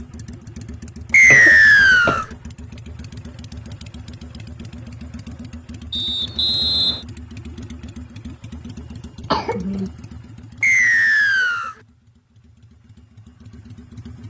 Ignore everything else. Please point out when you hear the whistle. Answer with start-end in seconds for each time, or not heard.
1.1-2.2, 5.9-7.0, 10.6-11.8.